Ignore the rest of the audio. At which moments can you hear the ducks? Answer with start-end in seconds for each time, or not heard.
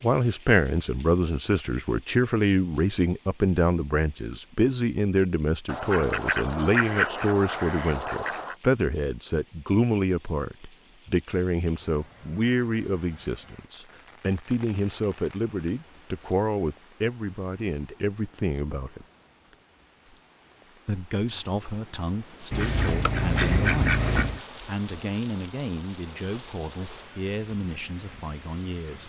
5.7-8.6, 22.5-24.4.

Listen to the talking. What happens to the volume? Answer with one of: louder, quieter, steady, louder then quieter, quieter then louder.
quieter.